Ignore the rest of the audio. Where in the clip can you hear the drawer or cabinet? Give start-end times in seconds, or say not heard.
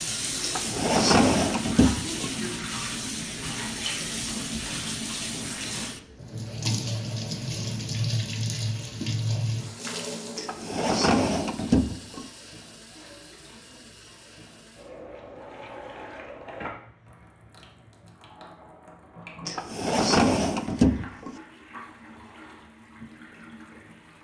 0.4-2.4, 10.3-12.3, 19.4-21.4.